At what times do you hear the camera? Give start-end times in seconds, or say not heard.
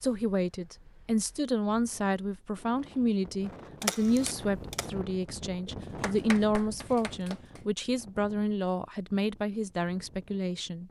3.8-4.8.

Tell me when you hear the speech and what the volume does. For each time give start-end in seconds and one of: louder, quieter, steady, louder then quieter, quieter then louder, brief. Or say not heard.
0.0-10.8 steady.